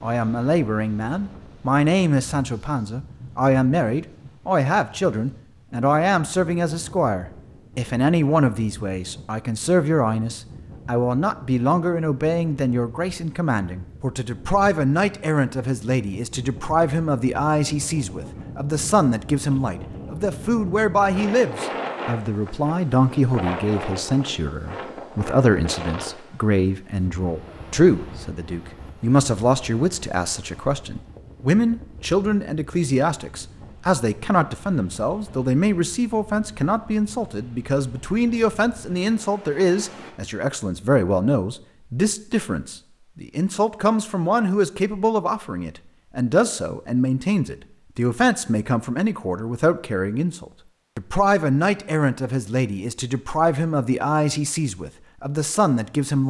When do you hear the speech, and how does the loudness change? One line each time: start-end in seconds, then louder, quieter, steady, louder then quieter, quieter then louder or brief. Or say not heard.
0.0-56.2 steady.